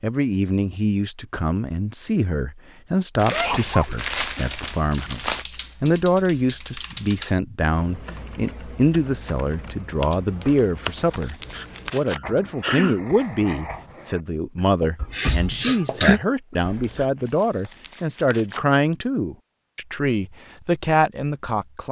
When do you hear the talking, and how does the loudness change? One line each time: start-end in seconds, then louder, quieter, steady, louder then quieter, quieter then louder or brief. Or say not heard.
0.0-21.8 steady.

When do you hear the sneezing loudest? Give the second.
16 s.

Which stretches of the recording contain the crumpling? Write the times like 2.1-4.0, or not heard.
3.1-5.5, 10.4-12.2, 17.0-18.6.